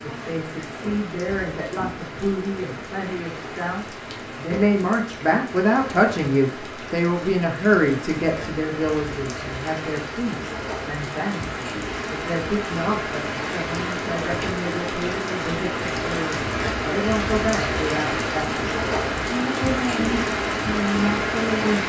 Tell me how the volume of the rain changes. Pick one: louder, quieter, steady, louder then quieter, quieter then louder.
louder.